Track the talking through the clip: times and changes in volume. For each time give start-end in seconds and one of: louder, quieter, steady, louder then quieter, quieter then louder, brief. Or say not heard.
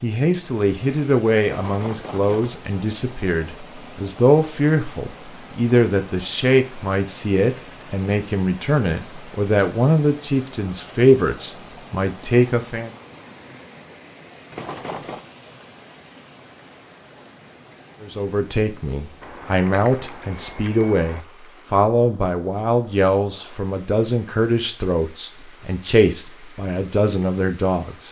0.0-12.9 steady
18.0-28.0 steady.